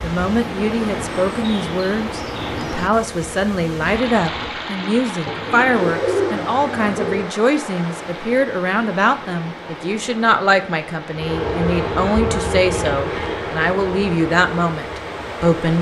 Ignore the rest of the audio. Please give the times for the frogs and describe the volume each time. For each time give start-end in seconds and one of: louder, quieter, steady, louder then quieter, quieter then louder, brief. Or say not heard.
not heard.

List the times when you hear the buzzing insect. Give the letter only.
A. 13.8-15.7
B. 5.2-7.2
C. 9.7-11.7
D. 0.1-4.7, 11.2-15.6
D.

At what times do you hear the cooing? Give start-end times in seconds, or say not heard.
5.2-7.2.